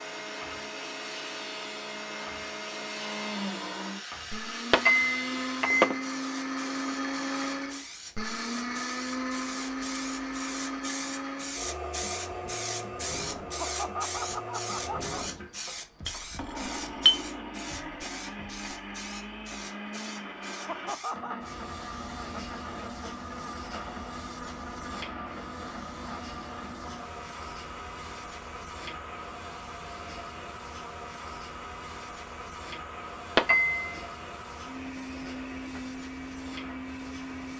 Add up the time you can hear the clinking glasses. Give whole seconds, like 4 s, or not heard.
3 s.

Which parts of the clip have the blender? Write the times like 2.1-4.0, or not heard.
0.0-37.5.